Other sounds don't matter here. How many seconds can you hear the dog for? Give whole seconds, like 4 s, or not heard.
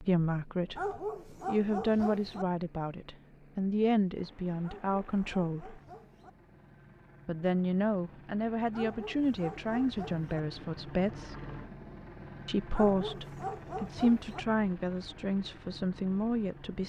7 s.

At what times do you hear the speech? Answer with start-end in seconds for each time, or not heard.
0.0-5.8, 7.2-11.3, 12.4-16.8.